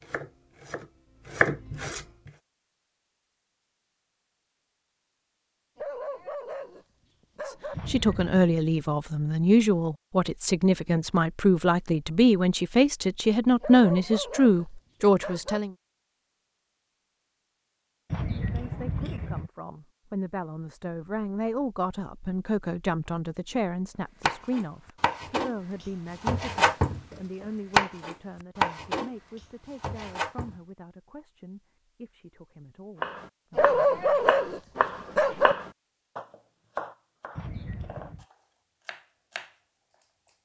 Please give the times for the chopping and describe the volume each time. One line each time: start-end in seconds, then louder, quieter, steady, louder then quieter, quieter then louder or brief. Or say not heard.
0.0-2.3 brief
24.2-30.6 louder then quieter
33.0-40.3 quieter.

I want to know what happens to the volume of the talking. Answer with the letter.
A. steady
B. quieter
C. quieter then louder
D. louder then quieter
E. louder
B.